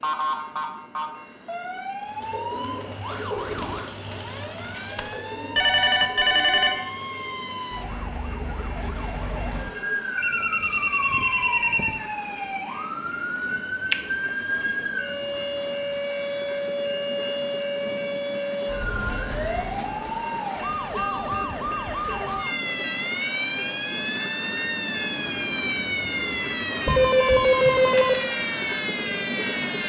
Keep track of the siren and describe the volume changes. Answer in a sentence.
The loudness of the siren goes up.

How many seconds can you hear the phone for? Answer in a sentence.
You can hear the phone for 5 seconds altogether.